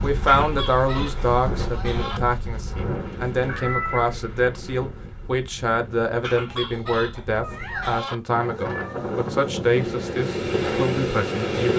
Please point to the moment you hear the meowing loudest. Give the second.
4 s.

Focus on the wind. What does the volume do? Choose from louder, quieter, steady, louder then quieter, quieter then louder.
quieter then louder.